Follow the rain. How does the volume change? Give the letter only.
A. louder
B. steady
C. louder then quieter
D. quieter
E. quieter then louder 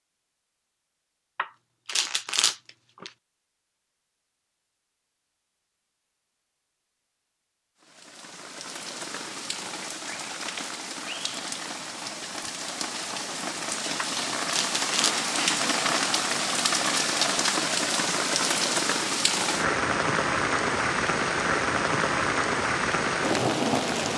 A.